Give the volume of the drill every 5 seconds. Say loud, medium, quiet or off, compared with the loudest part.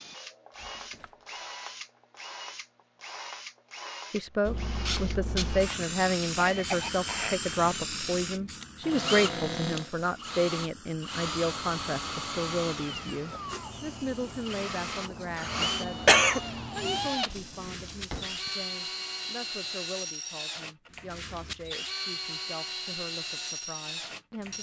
medium, loud, loud, loud, loud.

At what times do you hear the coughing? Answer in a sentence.
The coughing can be heard from 6.3 to 7.4 s and from 15.3 to 16.4 s.